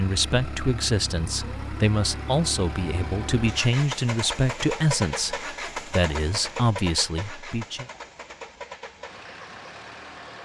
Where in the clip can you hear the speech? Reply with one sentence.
The speech can be heard from 0.0 to 7.8 s.